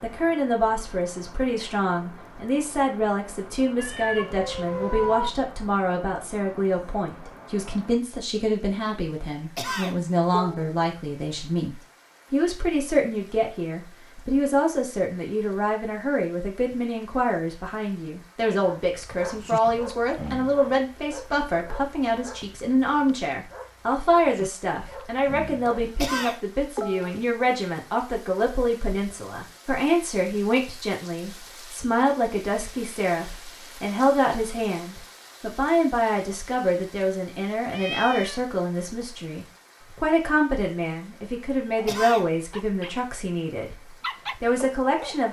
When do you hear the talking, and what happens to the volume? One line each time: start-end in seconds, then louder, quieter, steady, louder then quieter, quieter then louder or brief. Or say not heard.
0.0-43.8 steady
44.4-45.2 brief.